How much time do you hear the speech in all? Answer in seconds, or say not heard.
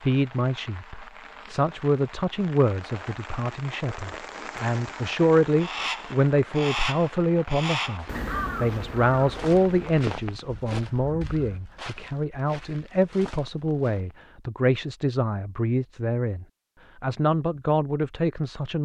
19 s.